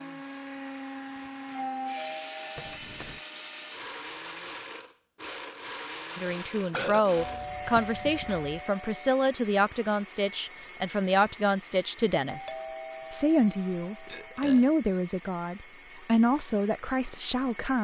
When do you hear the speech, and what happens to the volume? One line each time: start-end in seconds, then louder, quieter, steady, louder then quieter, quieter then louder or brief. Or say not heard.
6.2-17.7 steady.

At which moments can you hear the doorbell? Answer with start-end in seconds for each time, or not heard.
1.6-2.8, 7.2-9.1, 12.2-14.3.